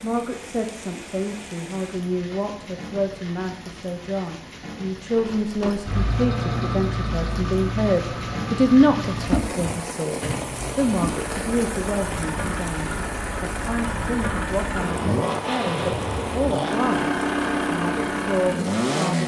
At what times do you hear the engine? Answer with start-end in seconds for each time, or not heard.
5.1-19.2.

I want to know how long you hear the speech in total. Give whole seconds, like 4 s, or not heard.
19 s.